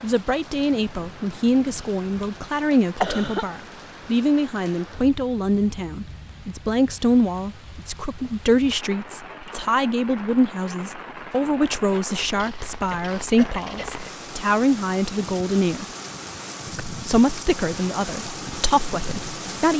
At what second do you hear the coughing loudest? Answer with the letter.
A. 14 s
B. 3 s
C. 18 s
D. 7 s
B.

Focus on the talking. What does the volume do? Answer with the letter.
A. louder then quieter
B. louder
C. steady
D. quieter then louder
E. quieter
C.